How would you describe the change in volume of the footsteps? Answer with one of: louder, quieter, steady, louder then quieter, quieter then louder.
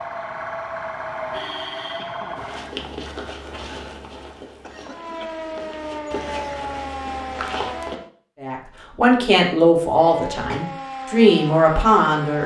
quieter then louder.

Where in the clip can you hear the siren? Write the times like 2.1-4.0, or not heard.
0.0-2.8, 4.8-8.1, 9.9-12.4.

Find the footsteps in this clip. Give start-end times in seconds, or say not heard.
2.4-8.0.